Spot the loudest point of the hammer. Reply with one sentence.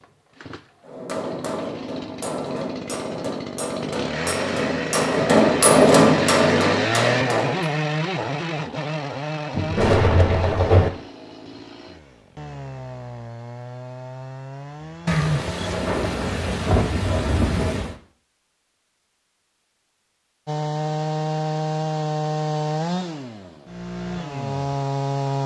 The volume of the hammer peaks at 6 seconds.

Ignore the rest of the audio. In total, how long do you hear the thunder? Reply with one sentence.
The thunder can be heard for 4 seconds in total.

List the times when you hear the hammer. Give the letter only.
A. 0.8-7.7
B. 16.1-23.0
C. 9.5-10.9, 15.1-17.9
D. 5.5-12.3
A.